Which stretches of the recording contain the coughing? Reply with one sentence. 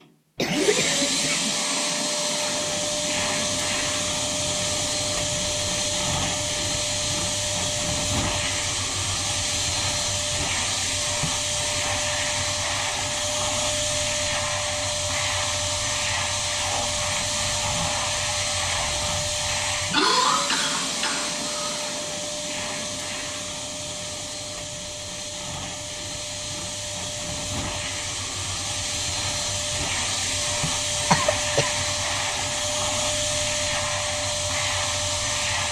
You can hear the coughing from 0.3 to 1.6 s, from 19.9 to 21.9 s and from 31.1 to 31.7 s.